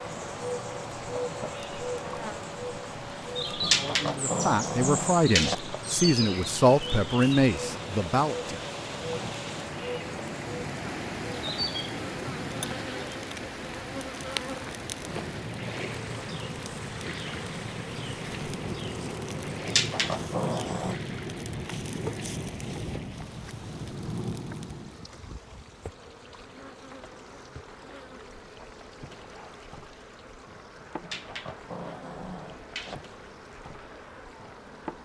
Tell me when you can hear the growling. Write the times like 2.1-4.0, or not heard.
3.6-5.5, 19.6-21.0, 31.0-33.0.